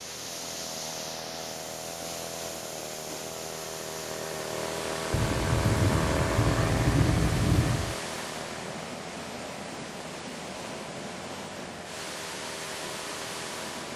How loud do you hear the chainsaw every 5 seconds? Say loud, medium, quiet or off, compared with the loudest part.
medium, loud, medium.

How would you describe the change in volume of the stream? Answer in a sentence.
The loudness of the stream stays about the same.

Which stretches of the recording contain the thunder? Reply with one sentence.
You can hear the thunder from 5.1 to 8.0 s.